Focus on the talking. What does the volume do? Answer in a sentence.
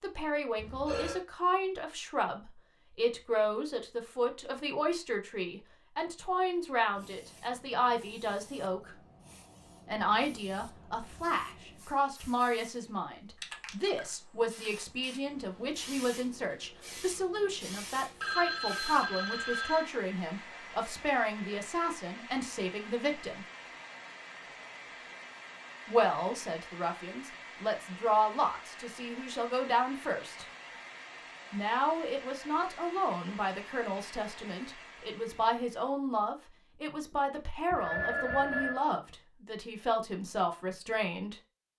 The loudness of the talking stays about the same.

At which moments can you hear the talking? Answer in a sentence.
The talking can be heard from 0.0 to 8.9 s, from 9.8 to 23.4 s, from 25.9 to 30.4 s and from 31.5 to 41.4 s.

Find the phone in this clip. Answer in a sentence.
The phone can be heard from 0.6 to 1.2 s, from 18.2 to 19.9 s and from 37.7 to 38.8 s.